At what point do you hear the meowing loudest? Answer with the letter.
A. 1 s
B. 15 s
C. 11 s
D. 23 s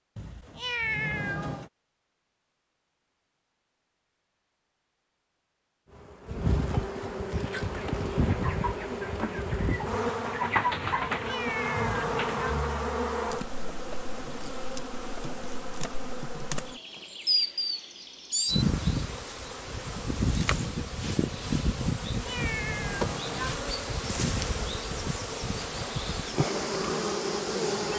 A.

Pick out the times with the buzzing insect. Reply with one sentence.
You can hear the buzzing insect from 5.8 to 27.9 s.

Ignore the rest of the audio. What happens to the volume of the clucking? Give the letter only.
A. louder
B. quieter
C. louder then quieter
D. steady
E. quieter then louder
C.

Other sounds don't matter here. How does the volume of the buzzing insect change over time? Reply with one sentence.
The loudness of the buzzing insect stays about the same.